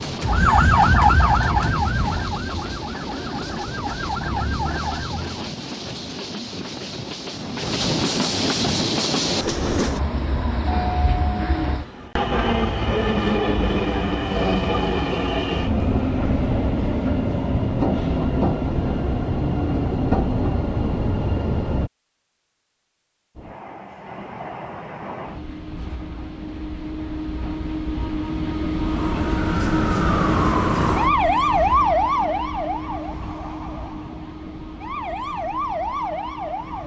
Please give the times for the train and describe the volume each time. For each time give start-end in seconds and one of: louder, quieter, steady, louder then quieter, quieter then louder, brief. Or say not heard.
0.0-21.9 louder
23.4-36.8 louder then quieter.